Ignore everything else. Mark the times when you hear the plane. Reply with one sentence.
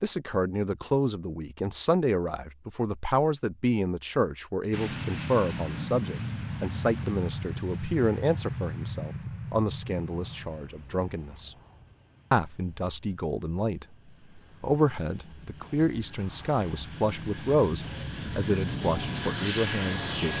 The plane can be heard from 4.7 to 20.3 s.